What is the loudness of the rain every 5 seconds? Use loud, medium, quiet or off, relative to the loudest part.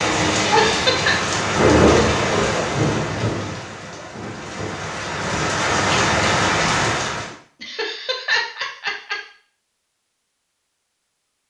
loud, loud, off.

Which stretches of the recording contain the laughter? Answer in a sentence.
The laughter can be heard from 0.3 to 1.1 s and from 7.6 to 9.2 s.